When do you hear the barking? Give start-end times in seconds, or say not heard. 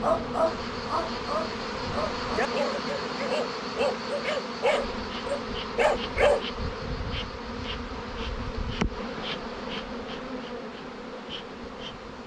0.0-6.5.